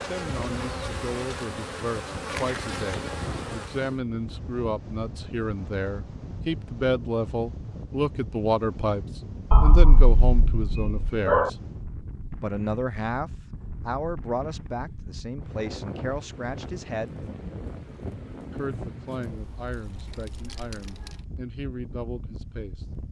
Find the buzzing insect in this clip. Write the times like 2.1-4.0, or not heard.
0.0-4.0.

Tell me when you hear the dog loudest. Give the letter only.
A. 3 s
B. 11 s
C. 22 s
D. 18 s
B.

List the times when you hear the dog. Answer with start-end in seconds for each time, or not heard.
9.5-11.5.